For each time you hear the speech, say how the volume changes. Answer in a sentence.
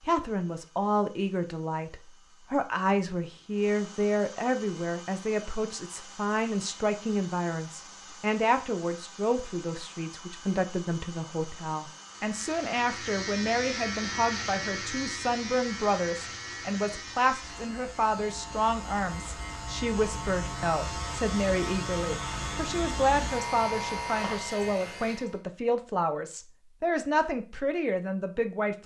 The speech can be heard from 0.0 to 28.8 s, at a steady volume.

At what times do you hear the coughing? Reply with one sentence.
You can't hear the coughing here.